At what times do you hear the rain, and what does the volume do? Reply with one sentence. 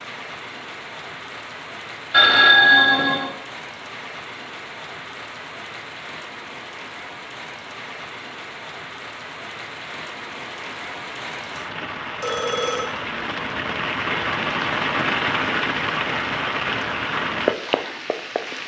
The rain can be heard from 0.0 to 18.6 s, getting louder.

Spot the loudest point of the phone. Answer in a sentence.
The loudest moment of the phone is at 3 seconds.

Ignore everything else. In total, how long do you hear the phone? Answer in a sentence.
You can hear the phone for 2 seconds altogether.